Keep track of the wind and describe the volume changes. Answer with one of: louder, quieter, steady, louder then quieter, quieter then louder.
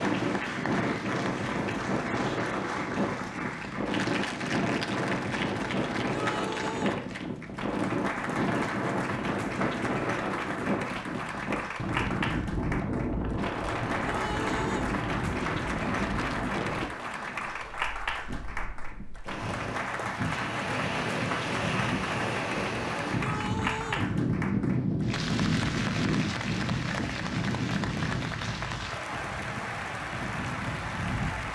steady.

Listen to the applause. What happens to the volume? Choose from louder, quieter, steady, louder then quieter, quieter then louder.
steady.